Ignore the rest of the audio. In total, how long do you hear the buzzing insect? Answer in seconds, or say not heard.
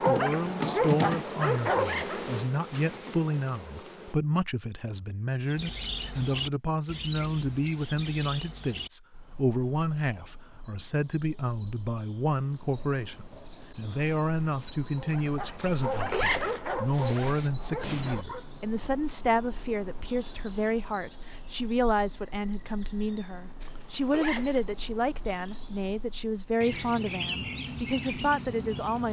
4 s.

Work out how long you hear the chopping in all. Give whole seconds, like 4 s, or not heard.
not heard.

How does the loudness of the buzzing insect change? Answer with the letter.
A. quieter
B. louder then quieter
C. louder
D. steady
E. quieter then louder
A.